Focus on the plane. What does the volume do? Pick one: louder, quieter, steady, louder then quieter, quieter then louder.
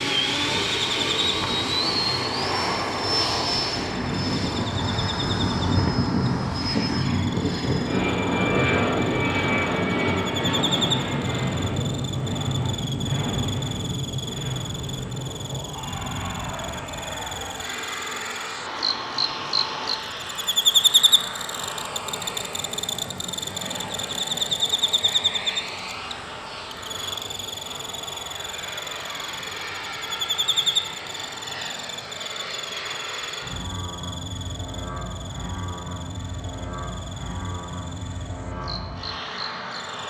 quieter.